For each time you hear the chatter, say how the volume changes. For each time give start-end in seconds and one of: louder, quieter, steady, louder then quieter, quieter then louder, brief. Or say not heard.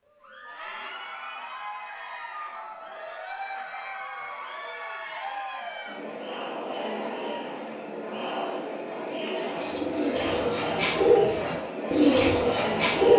0.1-13.1 louder.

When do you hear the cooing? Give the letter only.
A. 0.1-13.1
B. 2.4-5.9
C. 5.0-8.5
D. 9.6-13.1
D.